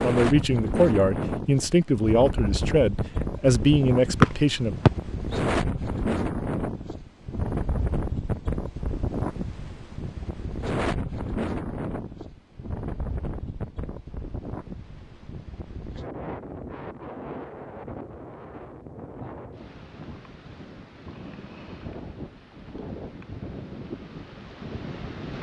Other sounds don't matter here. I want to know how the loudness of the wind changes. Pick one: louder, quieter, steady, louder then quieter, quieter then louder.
quieter.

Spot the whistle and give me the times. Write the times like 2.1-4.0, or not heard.
4.2-5.3.